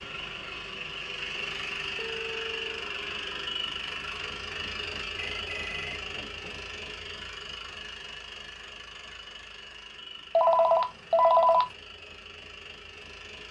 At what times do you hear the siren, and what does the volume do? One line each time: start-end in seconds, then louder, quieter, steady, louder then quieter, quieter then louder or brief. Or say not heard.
not heard.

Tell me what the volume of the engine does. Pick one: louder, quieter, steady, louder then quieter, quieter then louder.
quieter.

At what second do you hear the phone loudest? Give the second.
11 s.